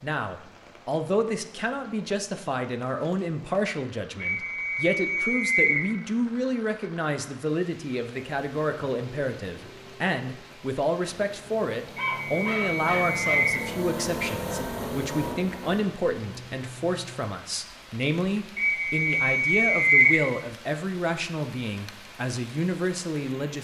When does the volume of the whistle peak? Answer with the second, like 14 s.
20 s.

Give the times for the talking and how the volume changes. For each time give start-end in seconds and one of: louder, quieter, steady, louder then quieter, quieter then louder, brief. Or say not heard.
0.0-23.5 steady.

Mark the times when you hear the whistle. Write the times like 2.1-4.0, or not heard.
4.2-5.8, 11.9-13.7, 18.6-20.2.